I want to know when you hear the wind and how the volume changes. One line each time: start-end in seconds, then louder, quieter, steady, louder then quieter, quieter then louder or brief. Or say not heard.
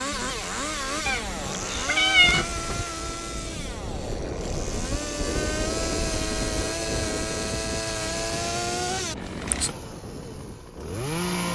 0.0-11.5 louder then quieter.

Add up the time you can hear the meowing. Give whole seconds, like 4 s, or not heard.
2 s.